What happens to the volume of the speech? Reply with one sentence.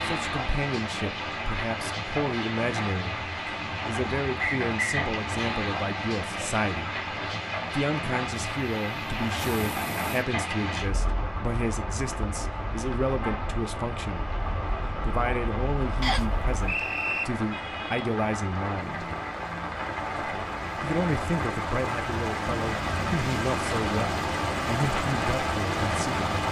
The loudness of the speech stays about the same.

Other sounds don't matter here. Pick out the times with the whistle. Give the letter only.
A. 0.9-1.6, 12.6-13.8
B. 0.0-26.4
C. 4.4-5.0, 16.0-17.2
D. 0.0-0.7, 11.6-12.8
C.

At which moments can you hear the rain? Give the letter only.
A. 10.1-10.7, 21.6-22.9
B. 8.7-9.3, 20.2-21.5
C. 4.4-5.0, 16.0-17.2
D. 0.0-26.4
D.